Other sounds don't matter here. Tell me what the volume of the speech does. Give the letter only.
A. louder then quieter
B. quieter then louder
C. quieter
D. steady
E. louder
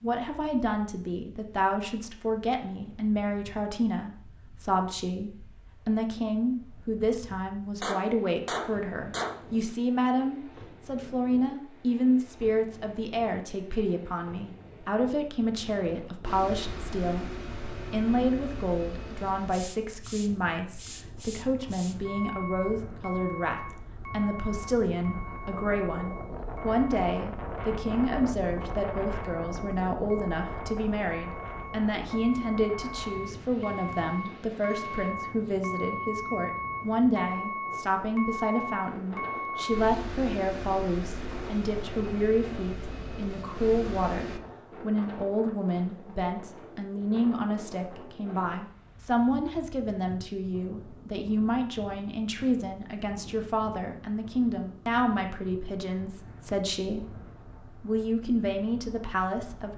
D.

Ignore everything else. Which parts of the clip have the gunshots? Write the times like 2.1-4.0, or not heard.
7.8-9.4.